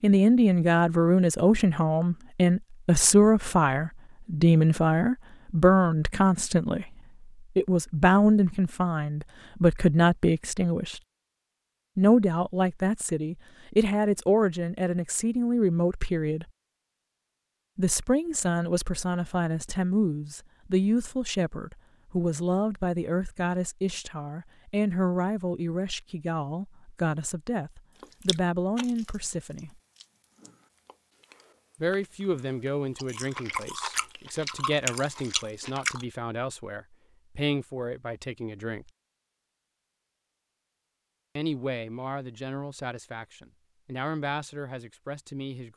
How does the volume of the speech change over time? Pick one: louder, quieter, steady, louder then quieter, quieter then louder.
quieter.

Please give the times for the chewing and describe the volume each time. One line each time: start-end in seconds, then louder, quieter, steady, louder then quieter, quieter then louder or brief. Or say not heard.
28.0-36.0 quieter then louder.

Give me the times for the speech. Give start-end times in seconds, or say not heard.
0.0-6.9, 7.5-11.0, 11.9-16.4, 17.8-29.8, 31.8-38.9, 41.4-45.7.